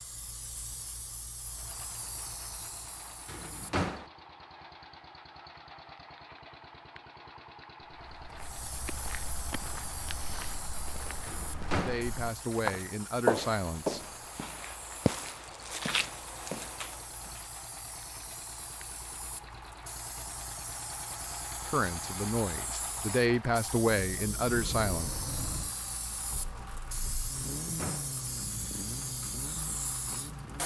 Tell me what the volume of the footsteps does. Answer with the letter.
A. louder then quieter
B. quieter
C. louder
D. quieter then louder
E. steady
A.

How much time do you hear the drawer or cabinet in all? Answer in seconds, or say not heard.
2 s.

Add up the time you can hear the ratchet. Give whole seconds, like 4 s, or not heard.
not heard.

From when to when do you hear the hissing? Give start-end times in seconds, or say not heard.
0.0-3.8, 8.3-30.6.